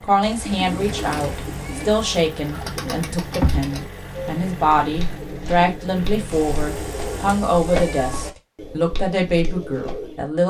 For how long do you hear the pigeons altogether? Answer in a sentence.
You can hear the pigeons for 10 seconds altogether.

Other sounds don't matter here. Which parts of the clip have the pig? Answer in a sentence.
The pig can't be heard in this clip.